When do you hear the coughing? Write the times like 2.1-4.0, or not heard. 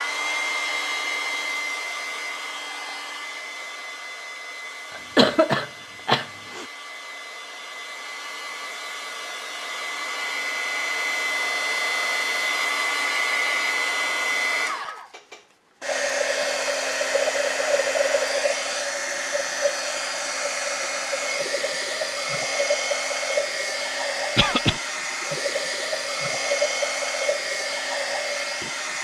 5.0-6.7, 24.4-24.8.